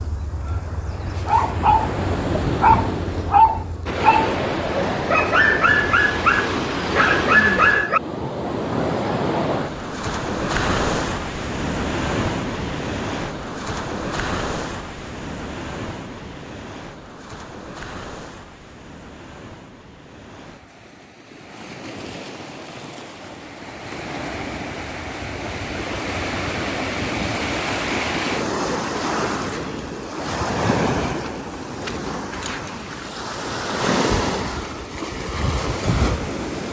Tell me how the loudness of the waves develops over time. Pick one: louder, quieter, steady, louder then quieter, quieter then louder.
quieter then louder.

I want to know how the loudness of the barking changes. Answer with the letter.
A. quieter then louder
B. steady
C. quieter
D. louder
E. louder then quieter
B.